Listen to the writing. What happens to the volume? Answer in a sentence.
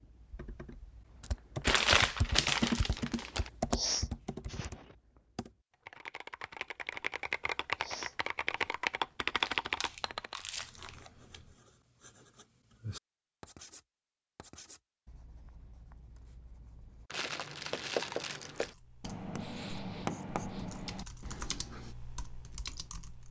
The loudness of the writing goes down, then up.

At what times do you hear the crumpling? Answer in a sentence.
The crumpling can be heard from 1.6 to 3.5 s, from 9.3 to 11.4 s and from 17.1 to 18.8 s.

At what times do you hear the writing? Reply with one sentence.
The writing can be heard from 10.6 to 21.9 s.